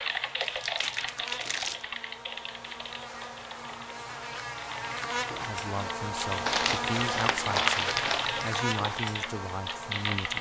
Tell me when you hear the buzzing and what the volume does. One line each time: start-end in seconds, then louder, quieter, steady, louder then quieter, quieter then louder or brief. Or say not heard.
0.0-10.3 louder.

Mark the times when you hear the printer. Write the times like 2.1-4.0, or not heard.
not heard.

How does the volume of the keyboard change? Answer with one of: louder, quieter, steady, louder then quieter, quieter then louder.
quieter then louder.